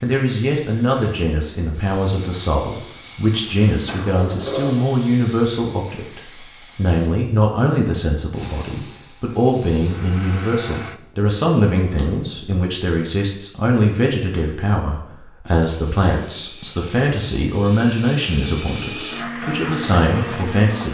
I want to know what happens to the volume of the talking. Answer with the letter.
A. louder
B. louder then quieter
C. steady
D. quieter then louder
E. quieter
C.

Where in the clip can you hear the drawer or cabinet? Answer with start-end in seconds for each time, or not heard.
3.9-4.8, 11.9-12.4.